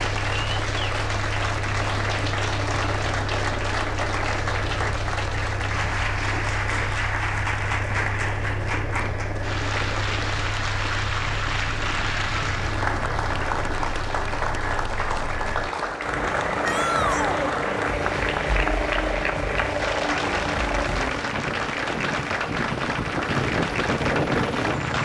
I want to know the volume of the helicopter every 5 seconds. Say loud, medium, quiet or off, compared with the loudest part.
medium, medium, medium, loud, loud.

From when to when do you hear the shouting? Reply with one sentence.
The shouting can be heard from 16.6 to 17.4 s.